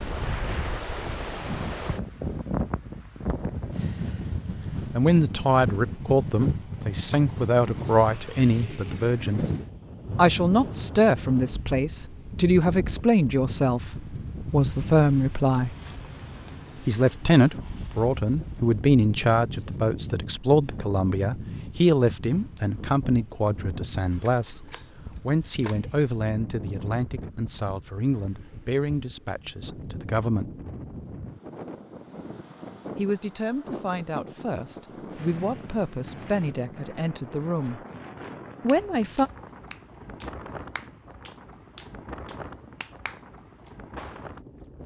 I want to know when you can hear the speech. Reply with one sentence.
The speech can be heard from 4.9 to 9.4 s, from 10.2 to 15.8 s, from 16.9 to 30.5 s, from 33.0 to 37.8 s and from 38.6 to 39.3 s.